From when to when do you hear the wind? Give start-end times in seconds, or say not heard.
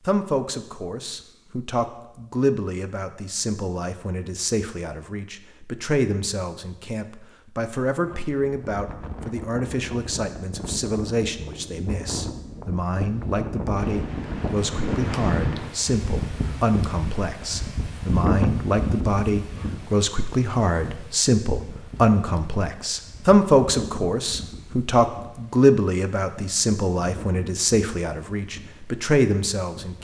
8.0-29.9.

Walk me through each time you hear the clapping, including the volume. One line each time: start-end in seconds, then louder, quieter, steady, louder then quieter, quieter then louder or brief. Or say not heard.
not heard.